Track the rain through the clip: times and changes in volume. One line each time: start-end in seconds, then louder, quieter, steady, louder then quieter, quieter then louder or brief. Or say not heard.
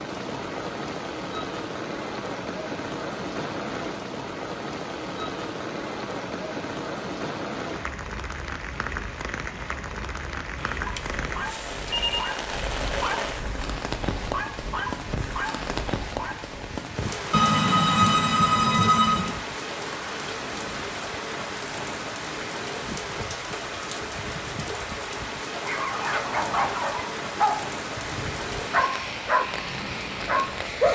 0.0-30.9 steady.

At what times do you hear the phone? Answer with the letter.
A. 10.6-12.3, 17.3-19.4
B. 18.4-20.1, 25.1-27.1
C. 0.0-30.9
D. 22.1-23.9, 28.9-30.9
A.